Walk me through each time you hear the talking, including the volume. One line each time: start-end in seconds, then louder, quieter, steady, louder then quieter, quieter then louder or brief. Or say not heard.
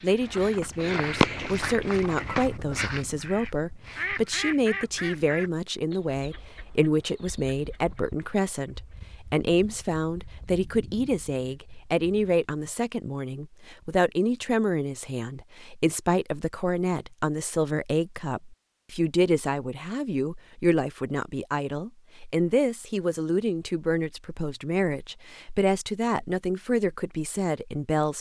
0.0-28.1 steady.